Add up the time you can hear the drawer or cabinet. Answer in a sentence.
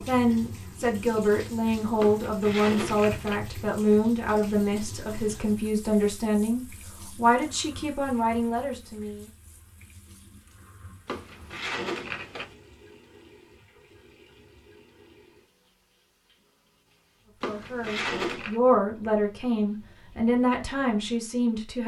The drawer or cabinet can be heard for 4 seconds in total.